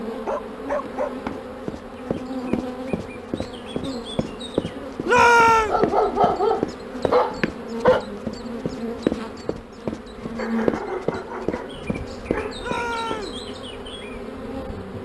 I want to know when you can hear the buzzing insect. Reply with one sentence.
The buzzing insect can be heard from 0.0 to 14.9 s.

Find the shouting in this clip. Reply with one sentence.
You can hear the shouting from 5.0 to 5.8 s and from 12.6 to 13.4 s.